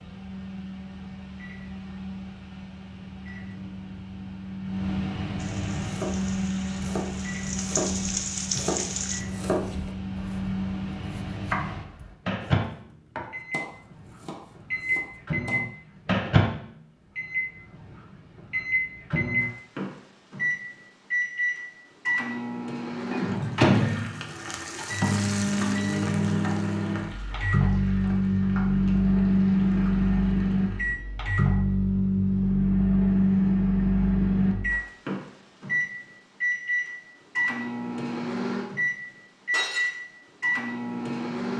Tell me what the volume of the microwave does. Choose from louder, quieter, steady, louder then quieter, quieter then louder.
louder.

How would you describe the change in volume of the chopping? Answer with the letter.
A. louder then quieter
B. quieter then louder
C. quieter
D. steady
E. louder
C.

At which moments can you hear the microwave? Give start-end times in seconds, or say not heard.
0.0-41.5.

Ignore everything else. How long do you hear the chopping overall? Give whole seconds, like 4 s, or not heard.
10 s.